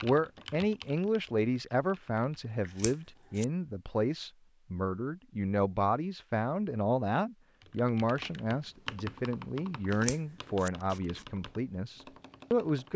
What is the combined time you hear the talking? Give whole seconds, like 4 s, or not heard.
13 s.